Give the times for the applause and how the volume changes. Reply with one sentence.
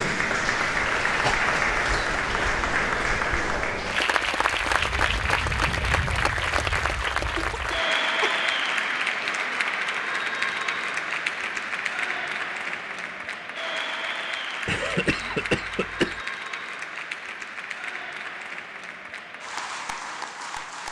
The applause can be heard from 0.0 to 20.8 s, getting quieter.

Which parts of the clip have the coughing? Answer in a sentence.
The coughing can be heard from 1.2 to 2.1 s, from 7.3 to 8.4 s and from 14.7 to 16.2 s.